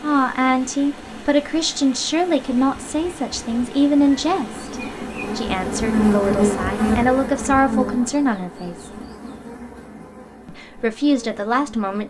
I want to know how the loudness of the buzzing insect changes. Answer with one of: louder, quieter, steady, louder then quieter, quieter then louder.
louder then quieter.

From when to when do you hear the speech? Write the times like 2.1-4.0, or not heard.
0.0-8.9, 10.4-12.0.